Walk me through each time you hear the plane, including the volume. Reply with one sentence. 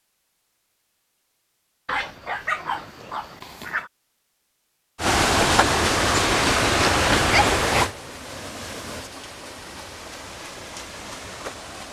You can't hear the plane here.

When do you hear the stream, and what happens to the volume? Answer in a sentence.
The stream can be heard from 5.0 to 11.8 s, getting quieter.